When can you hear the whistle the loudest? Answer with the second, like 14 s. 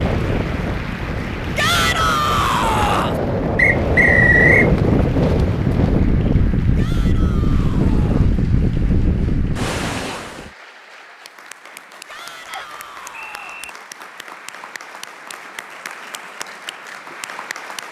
4 s.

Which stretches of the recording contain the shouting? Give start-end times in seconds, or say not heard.
1.6-3.2, 6.8-8.3, 12.1-13.7.